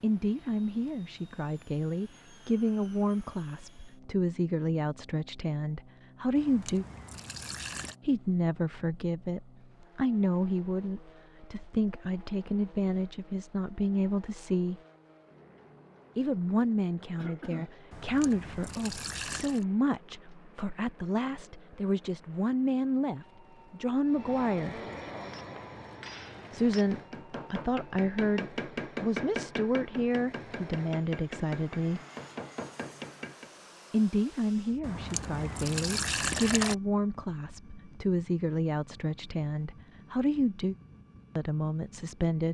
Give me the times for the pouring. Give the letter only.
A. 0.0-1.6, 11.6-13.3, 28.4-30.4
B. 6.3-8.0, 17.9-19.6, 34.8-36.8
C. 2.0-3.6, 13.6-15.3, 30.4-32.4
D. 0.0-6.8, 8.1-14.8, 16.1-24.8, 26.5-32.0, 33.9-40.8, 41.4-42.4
B.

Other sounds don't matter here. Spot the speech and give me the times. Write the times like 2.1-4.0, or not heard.
0.0-6.8, 8.1-14.8, 16.1-24.8, 26.5-32.0, 33.9-40.8, 41.4-42.4.